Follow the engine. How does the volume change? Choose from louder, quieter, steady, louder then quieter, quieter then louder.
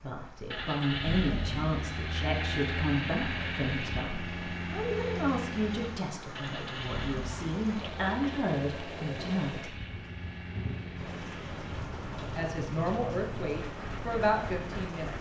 quieter.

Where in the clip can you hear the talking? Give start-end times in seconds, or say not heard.
0.0-9.8, 12.2-15.1.